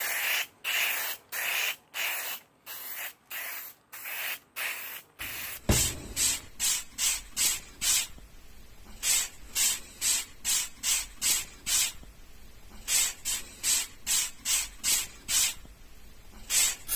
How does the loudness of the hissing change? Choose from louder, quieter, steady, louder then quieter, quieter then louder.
steady.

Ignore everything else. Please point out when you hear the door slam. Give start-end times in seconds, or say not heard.
5.2-6.5.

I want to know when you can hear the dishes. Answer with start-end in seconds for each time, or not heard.
not heard.